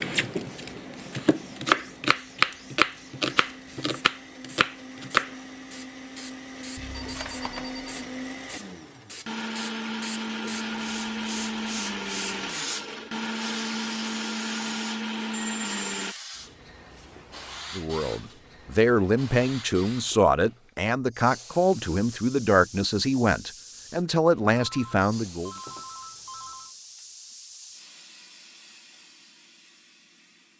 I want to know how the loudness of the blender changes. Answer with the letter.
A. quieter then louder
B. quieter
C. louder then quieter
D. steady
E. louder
E.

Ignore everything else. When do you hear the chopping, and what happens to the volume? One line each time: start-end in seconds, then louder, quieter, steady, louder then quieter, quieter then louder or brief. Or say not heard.
0.0-5.3 louder then quieter.